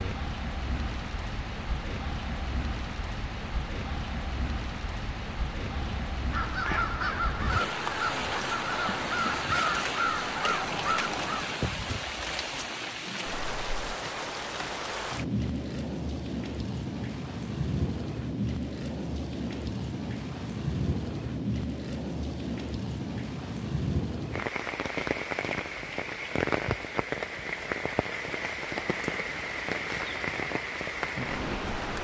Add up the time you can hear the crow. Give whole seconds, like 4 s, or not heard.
6 s.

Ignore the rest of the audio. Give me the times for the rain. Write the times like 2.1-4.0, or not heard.
0.0-31.9.